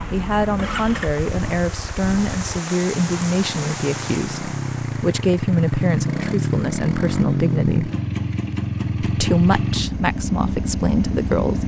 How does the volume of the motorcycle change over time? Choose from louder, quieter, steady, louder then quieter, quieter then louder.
louder.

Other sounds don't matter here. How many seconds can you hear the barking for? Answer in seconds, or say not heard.
not heard.